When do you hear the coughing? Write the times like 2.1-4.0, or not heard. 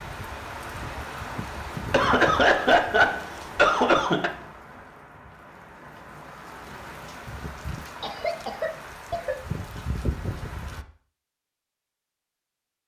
1.8-4.3, 8.0-9.3.